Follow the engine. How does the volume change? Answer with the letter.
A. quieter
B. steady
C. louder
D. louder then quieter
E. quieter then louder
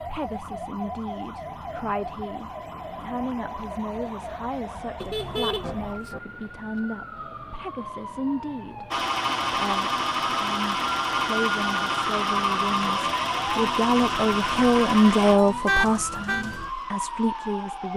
A.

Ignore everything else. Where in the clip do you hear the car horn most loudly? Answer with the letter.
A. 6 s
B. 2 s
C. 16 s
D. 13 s
C.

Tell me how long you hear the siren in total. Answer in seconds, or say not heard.
18 s.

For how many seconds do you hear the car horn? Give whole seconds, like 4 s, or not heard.
2 s.